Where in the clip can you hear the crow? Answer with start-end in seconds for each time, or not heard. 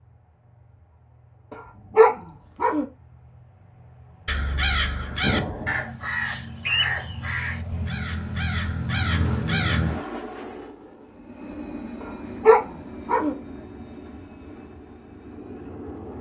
4.2-10.1.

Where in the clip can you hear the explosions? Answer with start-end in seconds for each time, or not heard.
5.2-5.9.